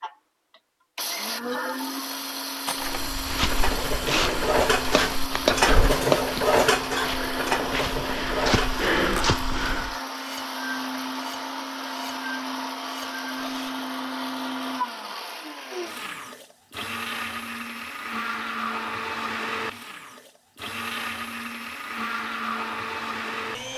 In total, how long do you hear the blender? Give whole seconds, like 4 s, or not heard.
24 s.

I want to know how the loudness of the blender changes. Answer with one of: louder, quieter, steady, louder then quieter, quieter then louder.
steady.